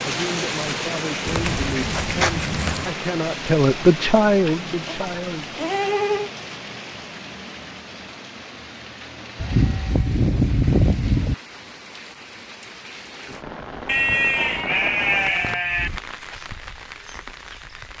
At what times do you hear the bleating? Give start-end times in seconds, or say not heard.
1.2-3.0, 4.8-6.3, 9.4-11.3, 13.8-15.9.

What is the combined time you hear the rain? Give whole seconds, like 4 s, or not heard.
18 s.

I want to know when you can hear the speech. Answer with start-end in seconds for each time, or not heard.
0.0-5.6.